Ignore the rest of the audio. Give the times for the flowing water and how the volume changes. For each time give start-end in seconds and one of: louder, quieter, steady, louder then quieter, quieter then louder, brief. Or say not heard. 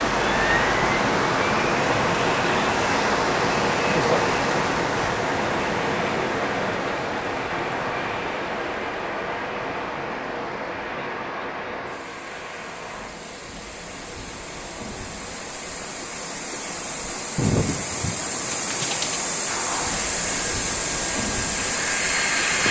0.0-22.6 quieter then louder.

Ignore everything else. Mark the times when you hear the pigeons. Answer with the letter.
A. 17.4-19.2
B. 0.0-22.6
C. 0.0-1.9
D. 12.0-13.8
A.